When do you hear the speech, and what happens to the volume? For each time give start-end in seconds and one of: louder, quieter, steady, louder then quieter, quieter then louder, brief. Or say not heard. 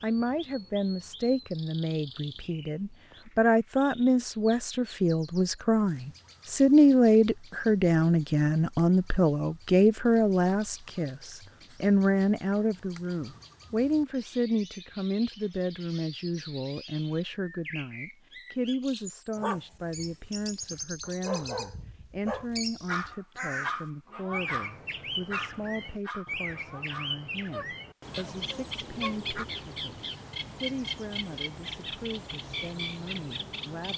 0.0-33.9 quieter.